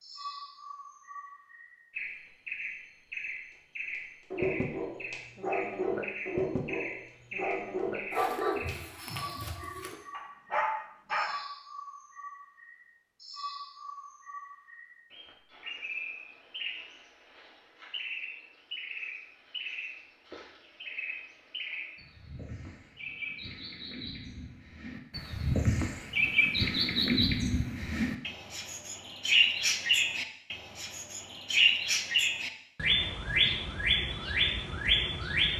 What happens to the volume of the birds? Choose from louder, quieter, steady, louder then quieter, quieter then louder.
louder.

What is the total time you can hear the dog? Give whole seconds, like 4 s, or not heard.
7 s.